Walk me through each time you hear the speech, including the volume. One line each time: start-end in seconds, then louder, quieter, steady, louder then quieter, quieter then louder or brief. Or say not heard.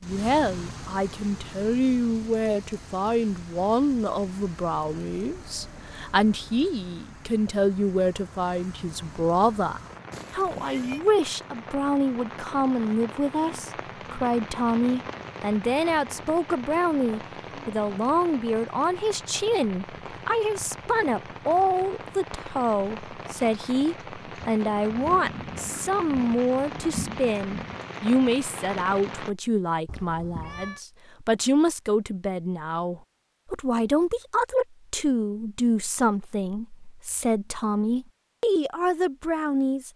0.0-39.9 steady.